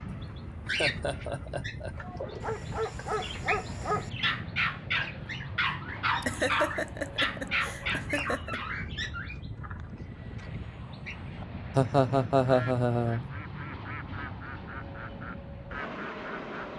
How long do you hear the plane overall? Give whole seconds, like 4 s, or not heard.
17 s.